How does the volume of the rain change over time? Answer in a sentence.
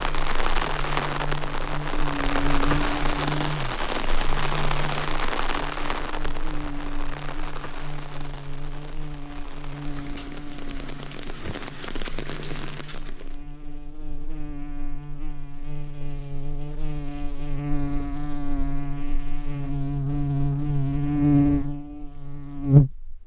The volume of the rain goes down, then up.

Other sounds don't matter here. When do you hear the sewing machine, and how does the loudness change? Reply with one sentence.
You can't hear the sewing machine here.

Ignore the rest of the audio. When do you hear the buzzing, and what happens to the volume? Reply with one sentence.
The buzzing can be heard from 0.0 to 23.2 s, getting quieter then louder.